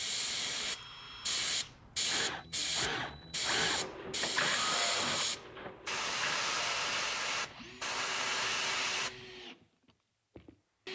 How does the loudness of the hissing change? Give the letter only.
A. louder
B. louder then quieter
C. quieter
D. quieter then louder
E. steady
E.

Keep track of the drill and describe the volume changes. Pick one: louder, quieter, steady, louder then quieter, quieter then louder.
louder then quieter.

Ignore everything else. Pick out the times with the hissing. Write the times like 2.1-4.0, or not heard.
0.0-9.2.